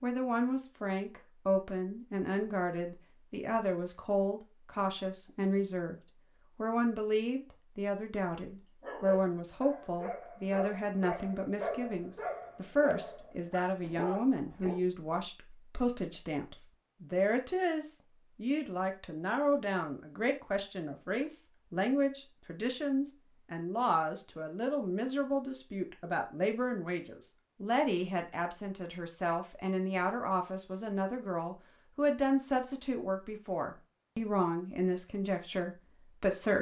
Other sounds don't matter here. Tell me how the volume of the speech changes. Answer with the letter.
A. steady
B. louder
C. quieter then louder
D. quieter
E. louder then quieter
A.